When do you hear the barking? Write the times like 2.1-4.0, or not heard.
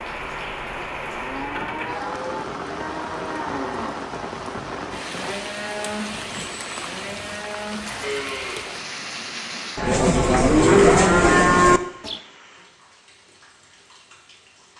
not heard.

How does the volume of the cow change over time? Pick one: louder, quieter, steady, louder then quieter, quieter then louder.
louder.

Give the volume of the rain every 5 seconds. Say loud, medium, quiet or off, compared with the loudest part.
loud, loud, quiet.